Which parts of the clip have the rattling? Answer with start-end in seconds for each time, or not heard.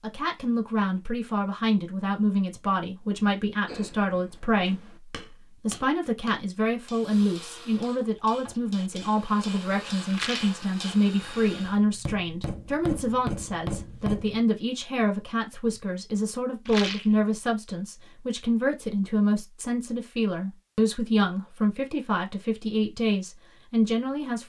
10.1-10.6, 16.6-17.1.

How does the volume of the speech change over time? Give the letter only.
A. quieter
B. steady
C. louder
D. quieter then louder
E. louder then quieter
B.